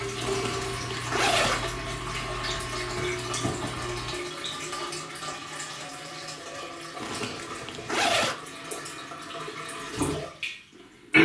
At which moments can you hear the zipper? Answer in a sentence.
The zipper can be heard from 0.2 to 1.7 s and from 7.0 to 8.3 s.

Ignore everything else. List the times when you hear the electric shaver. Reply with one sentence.
The electric shaver can be heard from 0.0 to 4.2 s.